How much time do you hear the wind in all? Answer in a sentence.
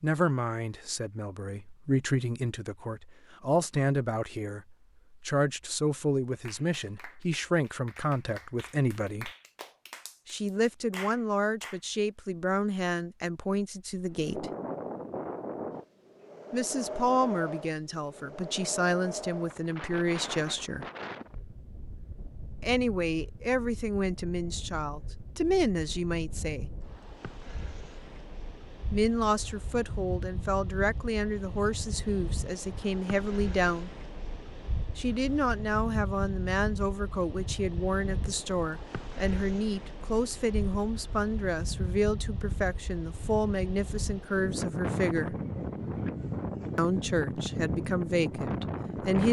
The wind can be heard for 35 seconds in total.